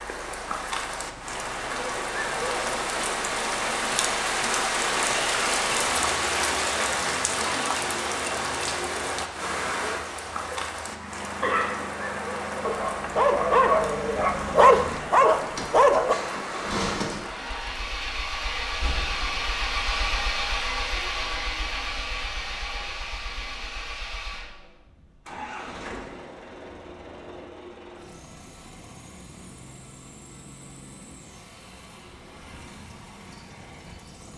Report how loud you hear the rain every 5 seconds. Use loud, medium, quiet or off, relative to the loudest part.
loud, loud, medium, medium, off, off, off.